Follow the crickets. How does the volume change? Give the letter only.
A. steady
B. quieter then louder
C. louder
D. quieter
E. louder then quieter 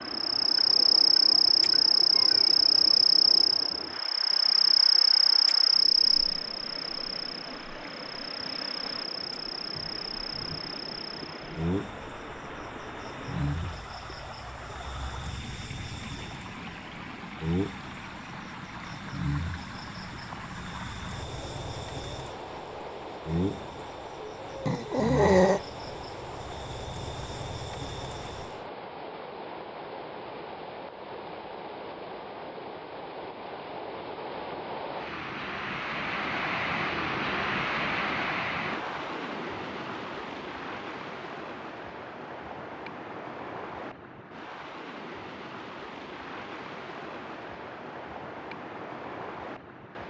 D.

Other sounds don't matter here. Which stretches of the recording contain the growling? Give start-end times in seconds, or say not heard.
24.6-25.6.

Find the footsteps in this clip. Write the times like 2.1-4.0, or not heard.
not heard.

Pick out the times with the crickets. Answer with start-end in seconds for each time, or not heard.
0.1-28.6.